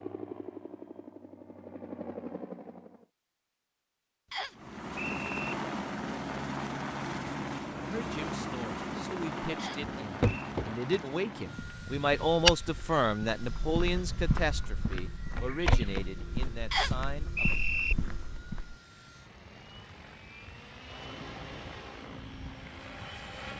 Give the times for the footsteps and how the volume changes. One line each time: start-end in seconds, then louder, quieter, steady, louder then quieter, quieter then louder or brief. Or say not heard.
10.0-18.8 louder then quieter.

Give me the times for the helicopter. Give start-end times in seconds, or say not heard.
0.0-3.0, 4.5-23.5.